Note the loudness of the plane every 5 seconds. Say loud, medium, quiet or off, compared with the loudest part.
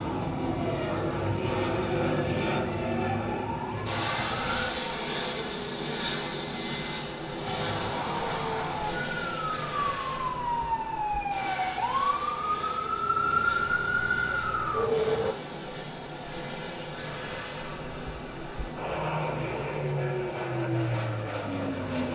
loud, loud, medium, medium, loud.